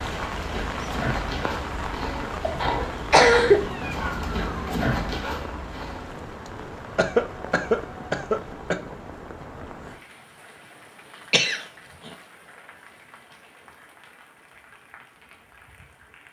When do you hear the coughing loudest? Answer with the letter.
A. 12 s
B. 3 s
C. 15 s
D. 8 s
B.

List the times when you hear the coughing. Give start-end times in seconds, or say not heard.
2.4-3.6, 7.0-8.8, 11.3-12.1.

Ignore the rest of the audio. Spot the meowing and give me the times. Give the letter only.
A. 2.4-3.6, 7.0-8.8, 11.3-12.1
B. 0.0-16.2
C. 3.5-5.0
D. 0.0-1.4
C.